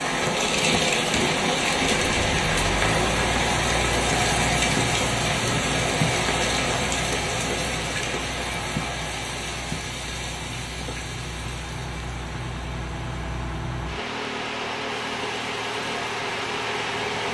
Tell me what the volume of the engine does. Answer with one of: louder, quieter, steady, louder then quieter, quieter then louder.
quieter then louder.